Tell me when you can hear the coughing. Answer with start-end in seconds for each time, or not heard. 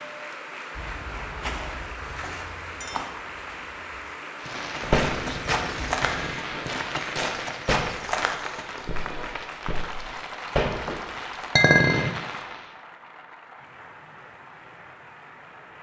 5.0-6.3.